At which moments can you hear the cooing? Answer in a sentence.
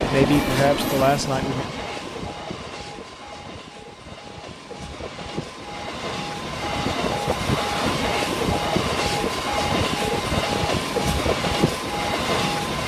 You can't hear the cooing here.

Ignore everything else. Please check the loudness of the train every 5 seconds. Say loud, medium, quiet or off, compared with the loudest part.
medium, loud, loud.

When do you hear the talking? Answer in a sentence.
You can hear the talking from 0.0 to 1.6 s.